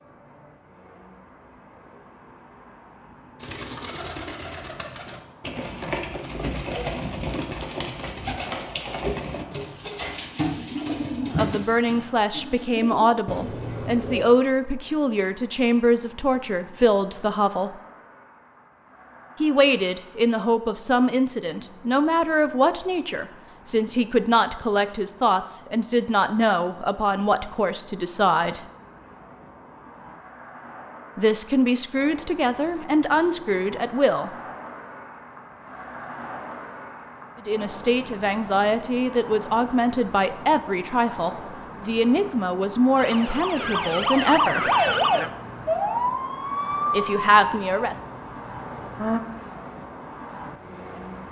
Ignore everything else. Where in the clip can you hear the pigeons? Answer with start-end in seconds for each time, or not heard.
3.4-14.2.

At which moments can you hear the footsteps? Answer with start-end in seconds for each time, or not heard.
not heard.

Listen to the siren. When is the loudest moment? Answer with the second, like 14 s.
45 s.